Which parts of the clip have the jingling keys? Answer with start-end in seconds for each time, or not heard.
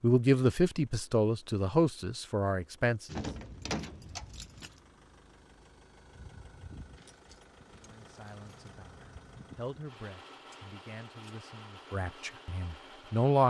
3.0-4.8, 7.0-8.8.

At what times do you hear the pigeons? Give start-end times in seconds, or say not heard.
not heard.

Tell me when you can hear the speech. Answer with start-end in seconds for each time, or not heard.
0.0-3.2, 7.8-13.4.